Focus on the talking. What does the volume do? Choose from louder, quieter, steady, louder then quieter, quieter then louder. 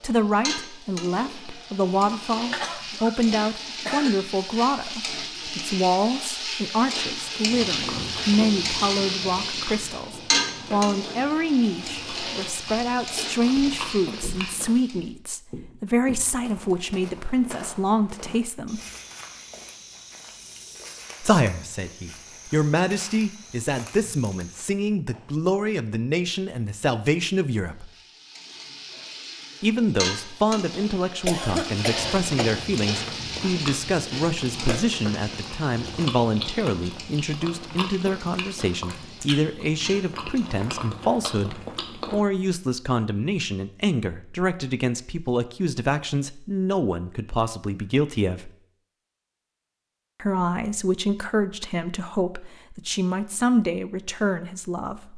steady.